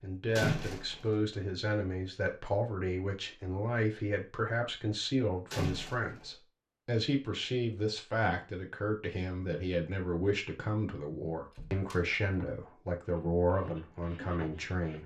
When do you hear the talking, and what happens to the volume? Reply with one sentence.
The talking can be heard from 0.0 to 15.0 s, at a steady volume.